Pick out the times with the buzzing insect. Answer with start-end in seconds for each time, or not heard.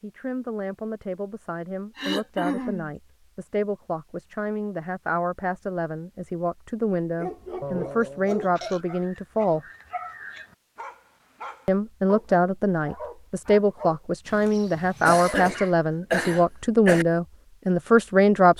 not heard.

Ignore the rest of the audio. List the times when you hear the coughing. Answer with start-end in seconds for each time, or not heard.
1.9-2.9, 7.6-8.8, 15.1-17.1.